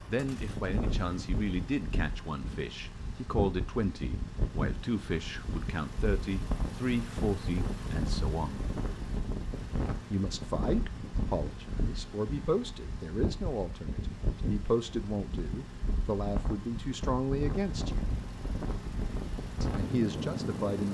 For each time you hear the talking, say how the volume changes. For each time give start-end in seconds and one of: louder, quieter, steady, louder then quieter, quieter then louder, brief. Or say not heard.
0.1-8.7 steady
10.1-18.1 steady
19.6-20.8 brief.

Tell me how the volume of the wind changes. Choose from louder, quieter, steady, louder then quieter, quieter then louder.
steady.